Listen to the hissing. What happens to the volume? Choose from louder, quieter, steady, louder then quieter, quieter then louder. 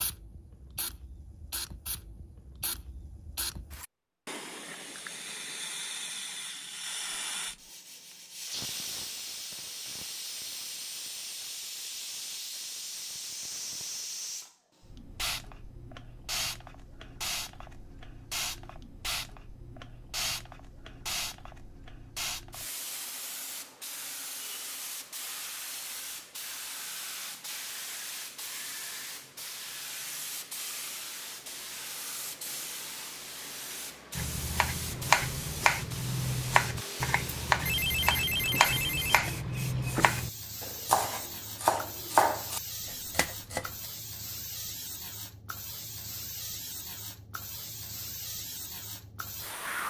steady.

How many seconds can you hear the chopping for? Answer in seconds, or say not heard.
10 s.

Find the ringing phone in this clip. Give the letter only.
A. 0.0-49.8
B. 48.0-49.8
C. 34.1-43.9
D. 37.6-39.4
D.